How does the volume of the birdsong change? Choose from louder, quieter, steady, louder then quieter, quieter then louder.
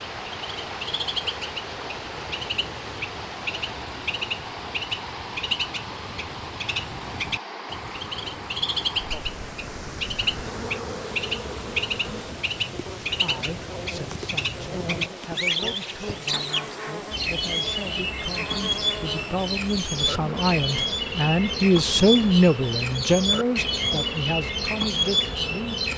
louder.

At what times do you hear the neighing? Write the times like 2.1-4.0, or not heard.
not heard.